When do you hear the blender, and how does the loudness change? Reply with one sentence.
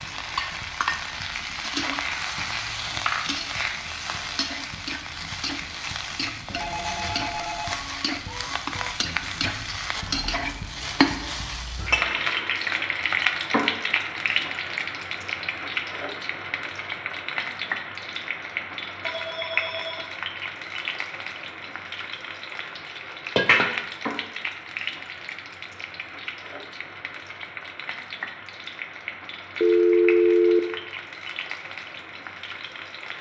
The blender can't be heard in this clip.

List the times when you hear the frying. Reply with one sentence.
You can hear the frying from 0.0 to 33.1 s.